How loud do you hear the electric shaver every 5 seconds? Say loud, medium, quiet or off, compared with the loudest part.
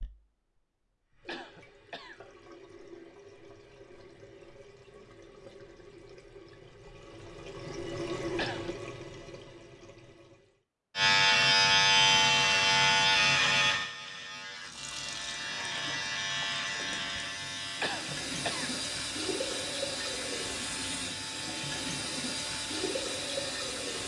off, off, loud, quiet, quiet.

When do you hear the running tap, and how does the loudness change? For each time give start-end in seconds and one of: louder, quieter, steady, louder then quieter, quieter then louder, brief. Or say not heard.
0.0-10.7 louder
14.6-24.0 louder.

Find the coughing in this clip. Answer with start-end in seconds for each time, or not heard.
1.2-2.2, 8.3-8.8, 17.8-18.7.